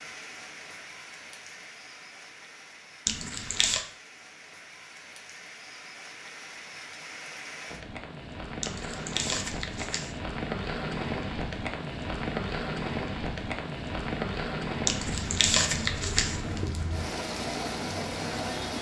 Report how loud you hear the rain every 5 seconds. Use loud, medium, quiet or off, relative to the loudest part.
quiet, medium, loud, loud.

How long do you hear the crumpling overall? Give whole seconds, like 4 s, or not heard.
4 s.